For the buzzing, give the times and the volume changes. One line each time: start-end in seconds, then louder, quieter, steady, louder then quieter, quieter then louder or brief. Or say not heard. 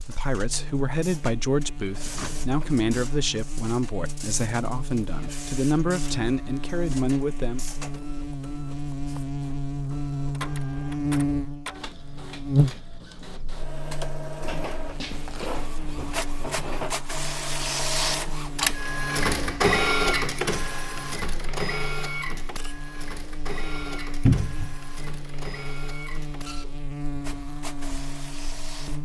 0.0-29.0 louder then quieter.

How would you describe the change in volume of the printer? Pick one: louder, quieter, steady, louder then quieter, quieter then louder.
louder then quieter.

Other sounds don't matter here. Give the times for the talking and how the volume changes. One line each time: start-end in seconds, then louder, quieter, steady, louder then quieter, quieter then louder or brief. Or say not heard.
0.0-7.7 steady.